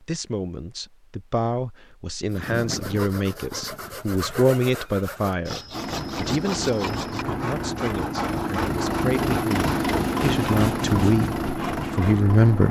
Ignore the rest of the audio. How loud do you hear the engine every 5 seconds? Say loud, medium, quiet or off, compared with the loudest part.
off, loud, loud.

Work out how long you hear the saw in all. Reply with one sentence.
The saw can be heard for 10 seconds in total.